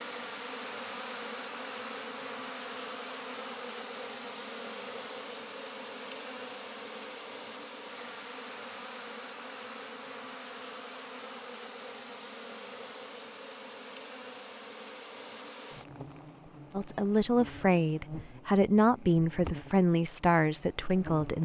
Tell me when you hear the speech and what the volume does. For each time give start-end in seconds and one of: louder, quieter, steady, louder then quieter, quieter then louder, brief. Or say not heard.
16.8-21.3 steady.